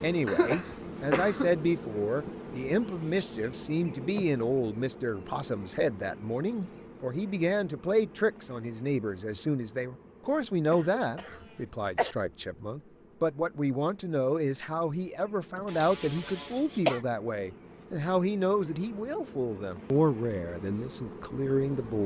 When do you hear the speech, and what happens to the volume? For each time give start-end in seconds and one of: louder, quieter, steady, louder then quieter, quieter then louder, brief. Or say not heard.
0.0-22.0 steady.